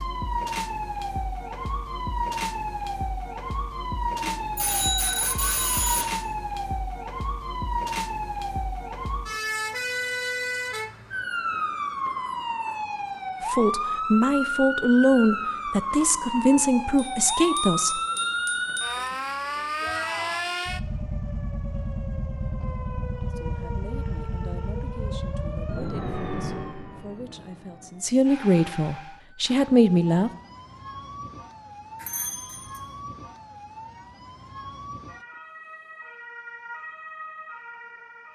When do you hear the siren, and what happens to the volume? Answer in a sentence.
The siren can be heard from 0.0 to 38.3 s, getting quieter.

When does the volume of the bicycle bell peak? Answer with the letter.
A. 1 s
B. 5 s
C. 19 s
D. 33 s
B.